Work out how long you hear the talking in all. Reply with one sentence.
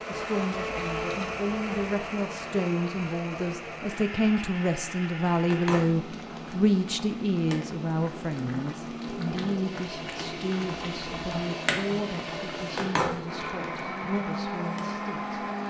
You can hear the talking for 15 seconds altogether.